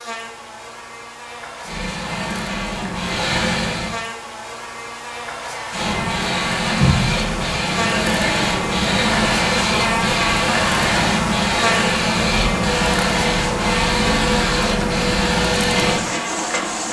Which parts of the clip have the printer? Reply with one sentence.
You can hear the printer from 1.6 to 4.0 s and from 5.7 to 16.8 s.